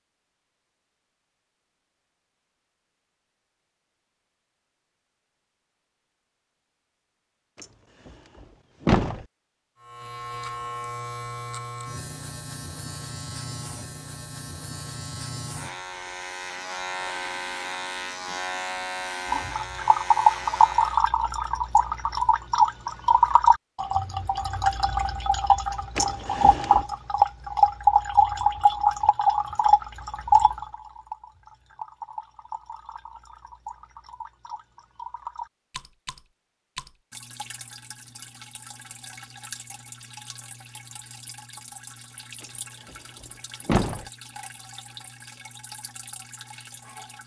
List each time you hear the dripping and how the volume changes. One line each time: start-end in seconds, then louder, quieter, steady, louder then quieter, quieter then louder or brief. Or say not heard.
19.3-47.2 quieter.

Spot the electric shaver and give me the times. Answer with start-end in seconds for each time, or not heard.
9.8-21.1.